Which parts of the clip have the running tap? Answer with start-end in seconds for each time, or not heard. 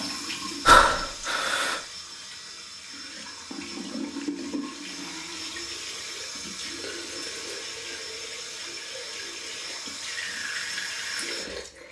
0.0-11.8.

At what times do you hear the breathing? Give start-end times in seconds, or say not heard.
0.7-1.8.